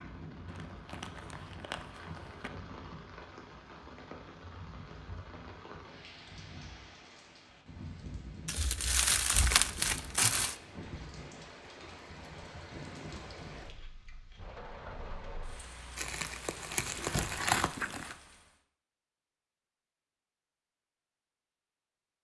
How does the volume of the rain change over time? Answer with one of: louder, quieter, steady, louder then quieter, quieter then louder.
steady.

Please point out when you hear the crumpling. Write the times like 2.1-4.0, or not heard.
0.5-2.5, 8.4-10.6, 15.9-18.1.